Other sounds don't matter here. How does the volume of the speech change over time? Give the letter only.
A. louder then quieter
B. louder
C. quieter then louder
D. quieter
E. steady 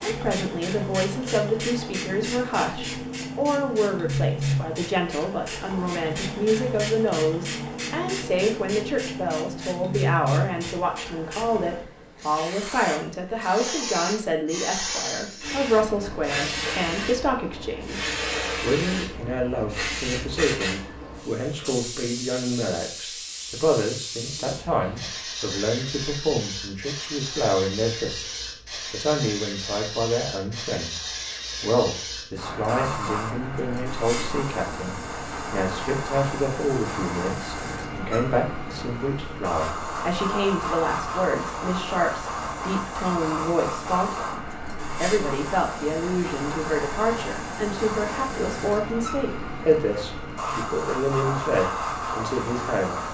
E.